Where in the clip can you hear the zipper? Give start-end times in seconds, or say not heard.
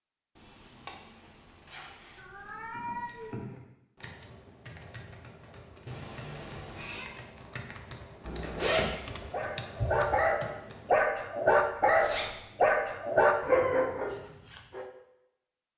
0.3-2.2, 8.2-8.9, 11.6-12.3.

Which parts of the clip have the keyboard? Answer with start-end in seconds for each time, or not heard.
2.4-10.9.